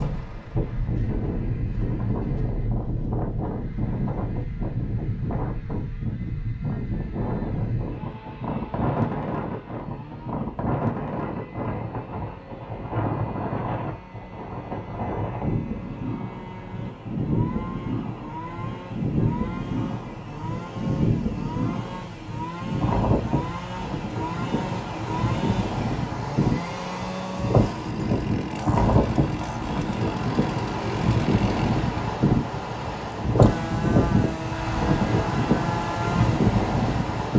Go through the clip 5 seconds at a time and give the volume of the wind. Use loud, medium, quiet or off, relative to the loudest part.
medium, medium, medium, medium, medium, loud, loud, loud.